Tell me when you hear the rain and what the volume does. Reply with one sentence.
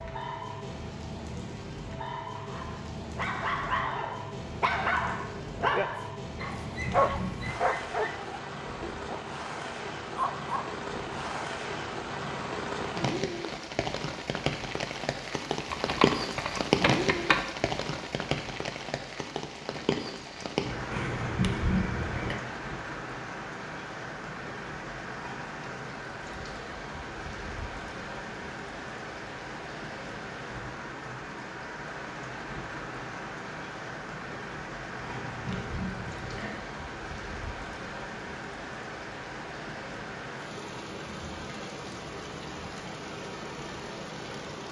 The rain can be heard from 0.0 to 44.6 s, getting louder then quieter.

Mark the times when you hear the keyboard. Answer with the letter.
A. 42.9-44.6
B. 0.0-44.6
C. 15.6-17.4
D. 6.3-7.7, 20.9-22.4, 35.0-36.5
C.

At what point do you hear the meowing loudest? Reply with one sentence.
The volume of the meowing peaks at 22 seconds.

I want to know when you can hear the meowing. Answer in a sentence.
The meowing can be heard from 6.3 to 7.7 s, from 20.9 to 22.4 s and from 35.0 to 36.5 s.